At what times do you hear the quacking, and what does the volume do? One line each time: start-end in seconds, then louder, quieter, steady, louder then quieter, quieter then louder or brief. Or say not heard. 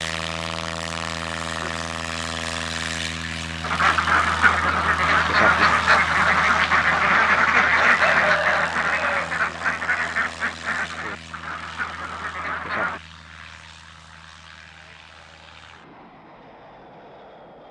3.6-13.0 quieter.